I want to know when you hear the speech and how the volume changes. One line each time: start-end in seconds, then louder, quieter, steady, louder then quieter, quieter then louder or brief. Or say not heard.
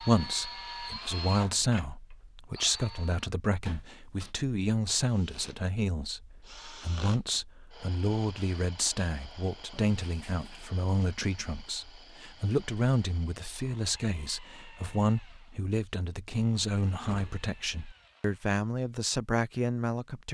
0.0-20.3 steady.